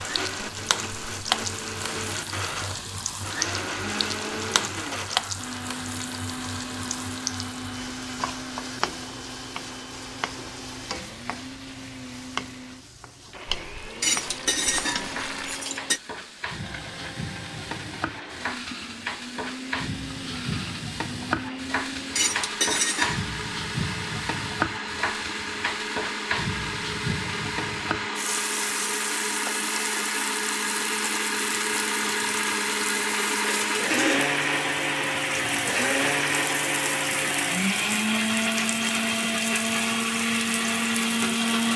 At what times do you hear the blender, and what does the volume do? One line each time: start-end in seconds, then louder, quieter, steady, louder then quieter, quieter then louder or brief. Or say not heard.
0.0-41.7 quieter then louder.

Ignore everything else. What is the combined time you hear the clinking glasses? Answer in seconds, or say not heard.
3 s.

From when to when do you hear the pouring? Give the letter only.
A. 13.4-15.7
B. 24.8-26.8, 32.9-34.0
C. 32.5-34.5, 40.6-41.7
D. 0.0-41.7
A.